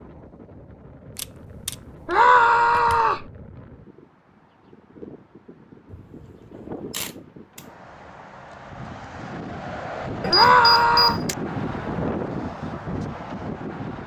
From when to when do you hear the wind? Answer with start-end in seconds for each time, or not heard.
0.0-14.0.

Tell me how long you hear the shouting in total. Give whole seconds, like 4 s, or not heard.
2 s.